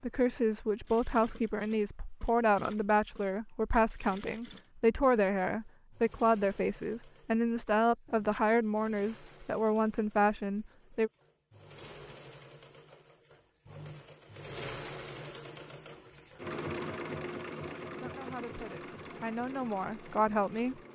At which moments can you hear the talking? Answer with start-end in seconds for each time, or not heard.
0.0-11.1, 17.9-20.8.